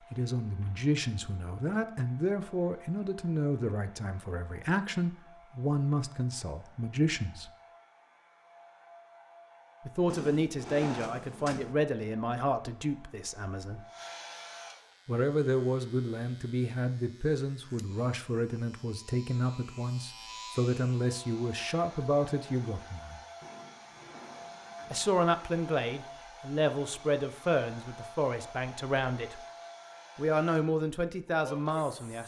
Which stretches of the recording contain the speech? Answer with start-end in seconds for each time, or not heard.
0.1-7.5, 9.8-13.8, 15.1-23.2, 24.9-29.4, 30.1-32.2.